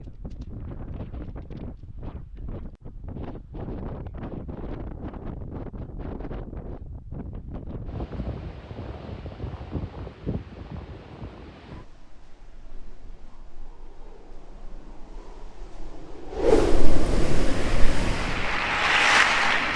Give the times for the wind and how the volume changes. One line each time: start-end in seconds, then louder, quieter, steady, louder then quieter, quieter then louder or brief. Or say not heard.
0.0-19.7 quieter then louder.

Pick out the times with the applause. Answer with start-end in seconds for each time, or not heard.
17.4-19.7.